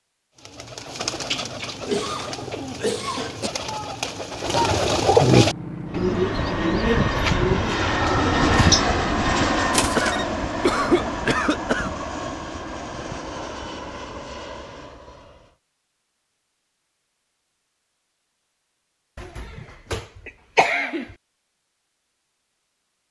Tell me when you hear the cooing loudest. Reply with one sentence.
The volume of the cooing peaks at 5 seconds.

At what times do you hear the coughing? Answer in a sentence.
You can hear the coughing from 1.8 to 3.5 s, from 9.9 to 11.9 s and from 19.1 to 21.1 s.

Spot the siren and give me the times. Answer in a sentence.
You can't hear the siren here.